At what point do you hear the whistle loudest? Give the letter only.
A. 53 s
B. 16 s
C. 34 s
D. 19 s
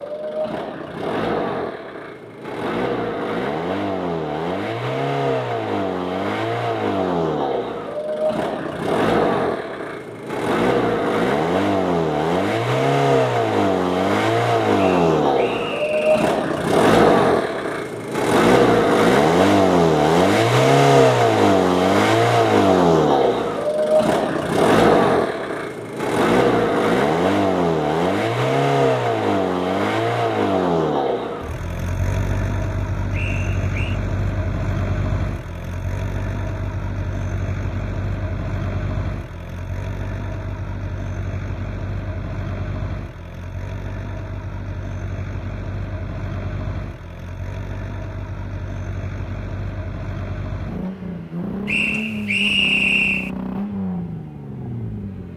A.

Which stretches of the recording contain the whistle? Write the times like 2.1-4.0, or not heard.
14.8-16.2, 33.1-34.0, 51.6-53.3.